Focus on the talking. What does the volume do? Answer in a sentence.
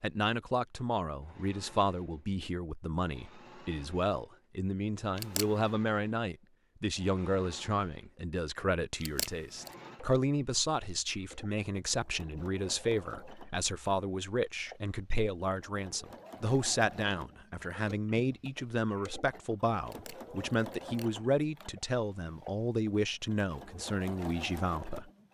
The loudness of the talking stays about the same.